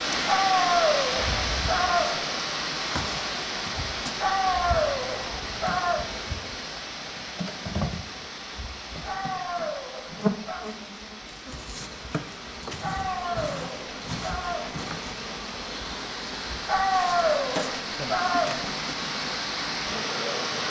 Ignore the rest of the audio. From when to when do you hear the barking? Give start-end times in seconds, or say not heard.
0.2-2.2, 4.2-6.0, 9.1-10.7, 12.8-14.8, 16.6-18.6.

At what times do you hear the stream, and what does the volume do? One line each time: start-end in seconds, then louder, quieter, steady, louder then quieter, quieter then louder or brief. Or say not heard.
0.0-20.6 quieter then louder.